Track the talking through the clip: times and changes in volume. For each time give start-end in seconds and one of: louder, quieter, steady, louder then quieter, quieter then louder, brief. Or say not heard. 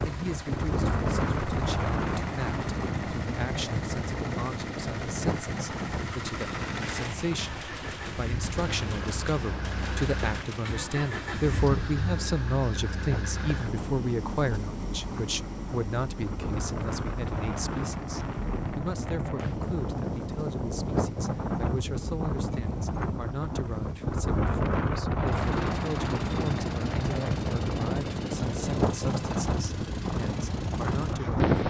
0.0-31.4 louder then quieter.